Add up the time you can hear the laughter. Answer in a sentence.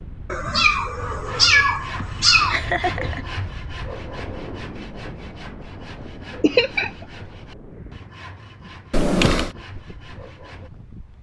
The laughter can be heard for 2 seconds in total.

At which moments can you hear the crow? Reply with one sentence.
You can't hear the crow here.